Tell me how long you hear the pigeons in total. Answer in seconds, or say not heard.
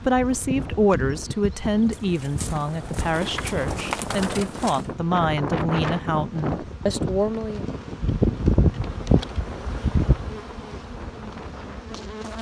3 s.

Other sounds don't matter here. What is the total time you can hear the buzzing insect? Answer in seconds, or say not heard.
12 s.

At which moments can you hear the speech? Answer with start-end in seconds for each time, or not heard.
0.0-7.7.